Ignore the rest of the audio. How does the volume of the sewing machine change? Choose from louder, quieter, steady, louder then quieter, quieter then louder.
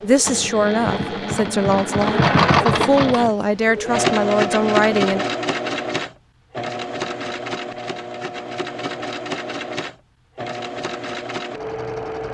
quieter.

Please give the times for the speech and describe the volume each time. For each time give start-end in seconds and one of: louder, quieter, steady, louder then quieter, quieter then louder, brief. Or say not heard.
0.0-5.2 steady.